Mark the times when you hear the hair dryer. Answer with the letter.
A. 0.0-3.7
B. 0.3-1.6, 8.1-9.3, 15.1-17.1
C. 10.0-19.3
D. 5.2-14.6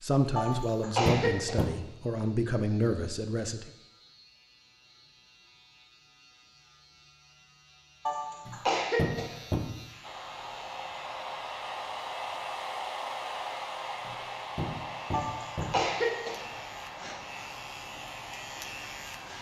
C.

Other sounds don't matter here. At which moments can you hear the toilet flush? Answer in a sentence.
The toilet flush can't be heard in this clip.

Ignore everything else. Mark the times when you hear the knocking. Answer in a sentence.
You can hear the knocking from 0.5 to 1.8 s, from 8.4 to 9.8 s and from 14.0 to 15.9 s.